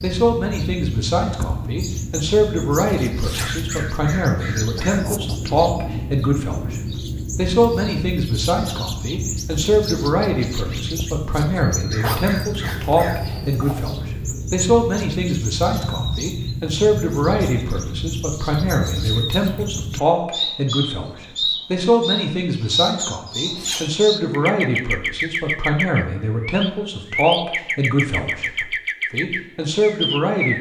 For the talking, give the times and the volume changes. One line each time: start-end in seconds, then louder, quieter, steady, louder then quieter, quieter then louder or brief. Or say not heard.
0.0-30.5 steady.